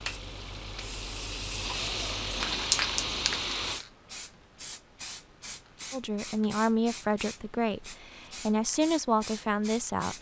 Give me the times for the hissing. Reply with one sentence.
The hissing can be heard from 0.0 to 10.1 s.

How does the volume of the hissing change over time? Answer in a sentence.
The loudness of the hissing goes up, then down.